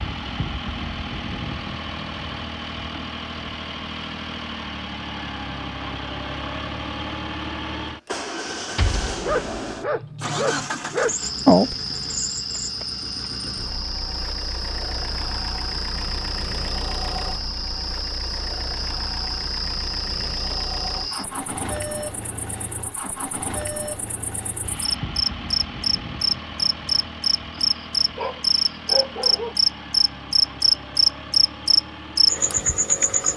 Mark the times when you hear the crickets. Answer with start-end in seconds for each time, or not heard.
11.2-33.3.